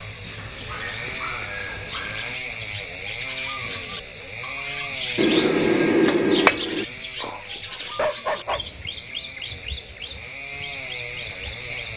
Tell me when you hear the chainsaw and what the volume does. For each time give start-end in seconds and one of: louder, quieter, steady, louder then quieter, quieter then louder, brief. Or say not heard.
0.0-11.9 quieter then louder.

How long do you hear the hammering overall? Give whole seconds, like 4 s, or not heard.
2 s.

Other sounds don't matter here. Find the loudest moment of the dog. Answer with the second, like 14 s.
8 s.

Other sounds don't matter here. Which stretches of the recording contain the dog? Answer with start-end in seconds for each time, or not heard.
0.3-2.4, 7.2-8.7.